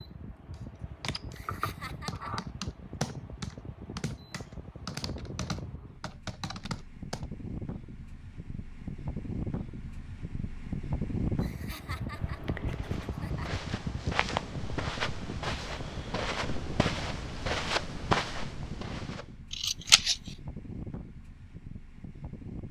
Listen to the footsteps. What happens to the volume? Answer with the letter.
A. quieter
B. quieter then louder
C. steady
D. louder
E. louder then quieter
D.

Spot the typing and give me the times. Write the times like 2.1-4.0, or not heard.
0.5-7.2.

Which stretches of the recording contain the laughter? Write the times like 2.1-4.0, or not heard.
1.3-2.5, 11.4-13.5.